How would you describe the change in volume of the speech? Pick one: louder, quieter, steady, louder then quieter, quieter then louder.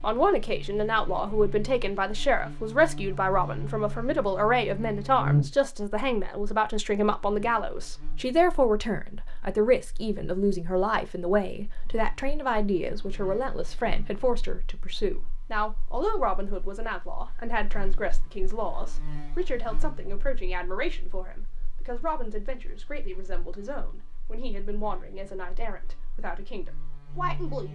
quieter.